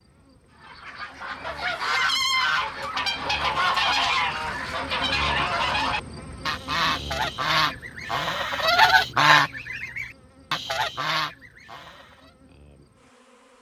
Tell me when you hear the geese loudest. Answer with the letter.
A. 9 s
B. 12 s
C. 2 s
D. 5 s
A.